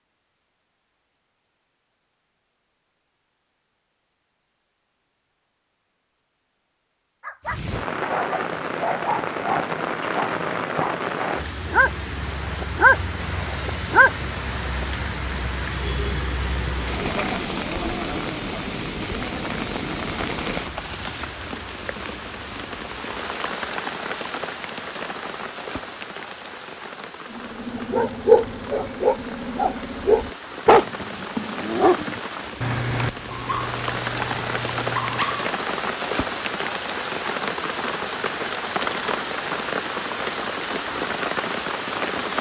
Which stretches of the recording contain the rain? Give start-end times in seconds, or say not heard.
7.5-42.3.